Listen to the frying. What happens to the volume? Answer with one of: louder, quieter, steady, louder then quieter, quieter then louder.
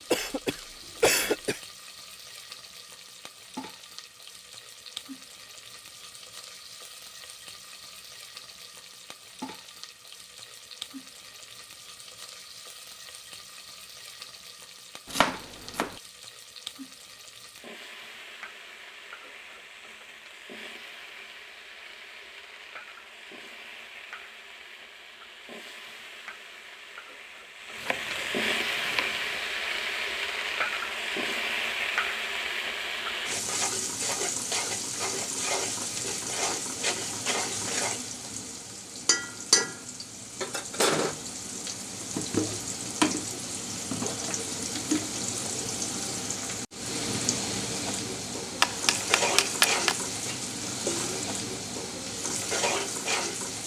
louder.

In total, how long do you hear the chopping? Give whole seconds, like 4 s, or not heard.
4 s.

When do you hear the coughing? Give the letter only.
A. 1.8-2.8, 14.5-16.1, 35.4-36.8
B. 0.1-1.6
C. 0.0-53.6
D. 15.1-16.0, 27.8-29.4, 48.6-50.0
B.